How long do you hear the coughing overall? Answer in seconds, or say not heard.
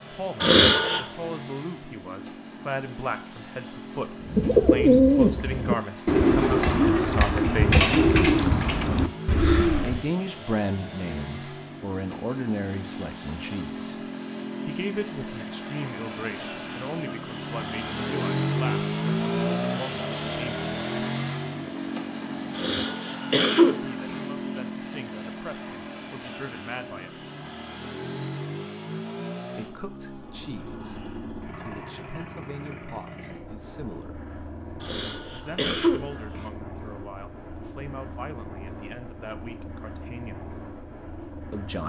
4 s.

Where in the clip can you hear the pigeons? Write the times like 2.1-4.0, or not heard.
4.2-10.1.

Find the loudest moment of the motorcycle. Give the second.
19 s.